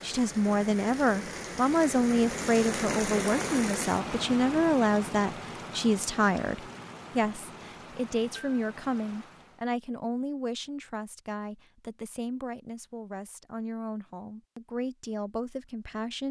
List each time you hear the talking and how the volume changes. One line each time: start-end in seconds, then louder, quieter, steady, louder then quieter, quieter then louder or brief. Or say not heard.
0.0-16.2 quieter.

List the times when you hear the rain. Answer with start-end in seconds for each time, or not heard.
0.0-9.7.